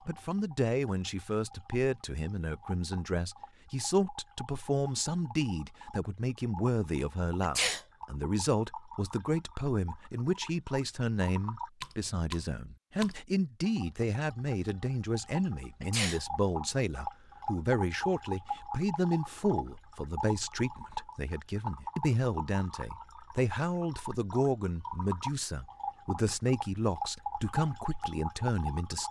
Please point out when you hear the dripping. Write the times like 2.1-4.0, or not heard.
0.0-29.0.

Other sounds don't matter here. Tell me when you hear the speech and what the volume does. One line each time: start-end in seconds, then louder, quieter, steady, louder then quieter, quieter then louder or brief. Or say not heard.
0.1-29.0 steady.